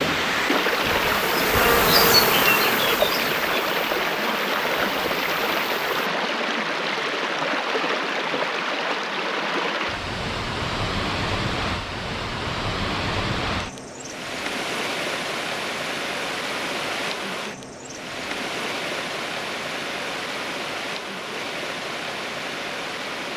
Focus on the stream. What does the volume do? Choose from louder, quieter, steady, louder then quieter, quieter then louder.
quieter.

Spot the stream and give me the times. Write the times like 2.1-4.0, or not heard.
0.0-23.3.